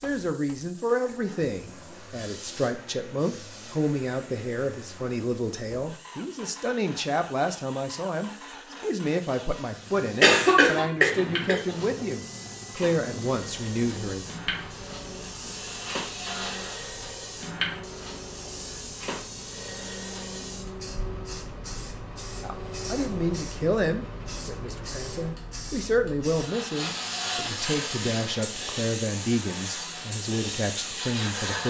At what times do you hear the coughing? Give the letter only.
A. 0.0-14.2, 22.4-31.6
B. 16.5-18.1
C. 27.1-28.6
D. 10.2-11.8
D.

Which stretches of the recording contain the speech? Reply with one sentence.
You can hear the speech from 0.0 to 14.2 s and from 22.4 to 31.6 s.